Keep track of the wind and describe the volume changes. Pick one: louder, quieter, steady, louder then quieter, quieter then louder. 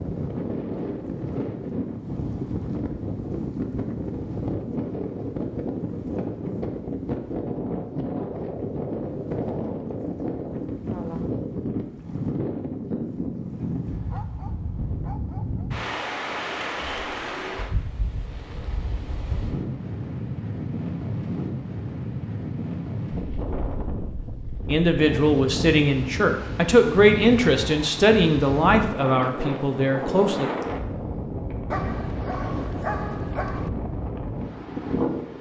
steady.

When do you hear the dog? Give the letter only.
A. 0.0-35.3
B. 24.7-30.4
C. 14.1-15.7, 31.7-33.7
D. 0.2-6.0
C.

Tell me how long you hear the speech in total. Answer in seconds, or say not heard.
6 s.